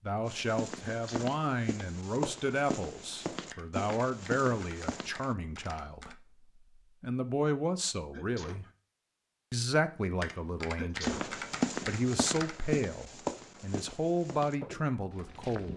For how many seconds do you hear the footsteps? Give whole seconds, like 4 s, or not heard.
10 s.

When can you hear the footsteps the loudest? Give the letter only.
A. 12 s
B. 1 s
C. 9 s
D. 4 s
A.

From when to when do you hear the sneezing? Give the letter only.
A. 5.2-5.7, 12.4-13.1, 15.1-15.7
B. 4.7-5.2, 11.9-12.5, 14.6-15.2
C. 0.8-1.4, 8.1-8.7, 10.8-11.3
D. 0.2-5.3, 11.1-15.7
C.